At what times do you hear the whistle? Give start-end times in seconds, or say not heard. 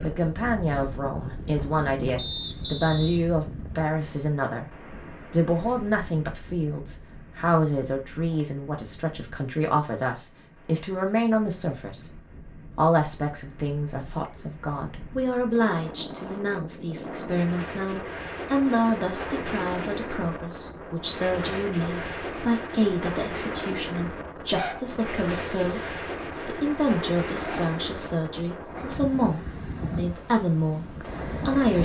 2.1-3.2.